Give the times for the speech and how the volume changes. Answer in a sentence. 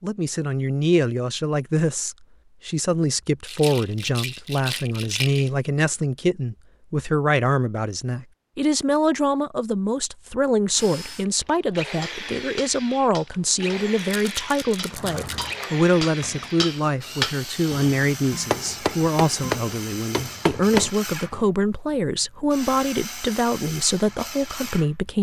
You can hear the speech from 0.0 to 25.1 s, at a steady volume.